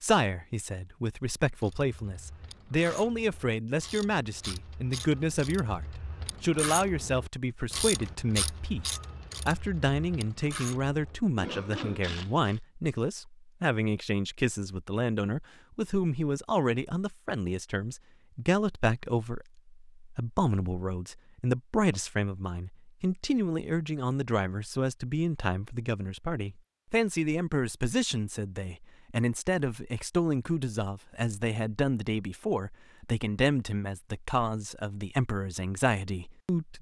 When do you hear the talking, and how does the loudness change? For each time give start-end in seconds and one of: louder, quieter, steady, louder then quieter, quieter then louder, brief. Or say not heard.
0.0-36.7 steady.